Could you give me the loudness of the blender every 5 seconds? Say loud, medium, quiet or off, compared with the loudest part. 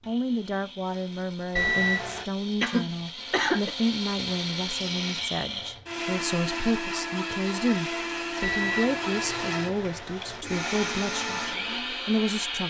medium, loud, loud.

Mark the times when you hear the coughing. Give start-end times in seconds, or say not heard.
2.6-3.8.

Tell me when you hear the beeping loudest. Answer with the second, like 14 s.
2 s.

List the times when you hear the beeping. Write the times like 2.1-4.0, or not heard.
1.6-2.2, 8.4-10.4.